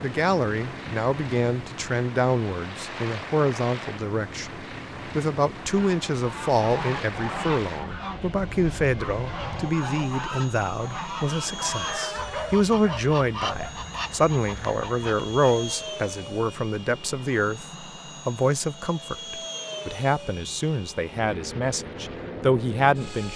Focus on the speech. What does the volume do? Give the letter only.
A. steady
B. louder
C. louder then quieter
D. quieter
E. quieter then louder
A.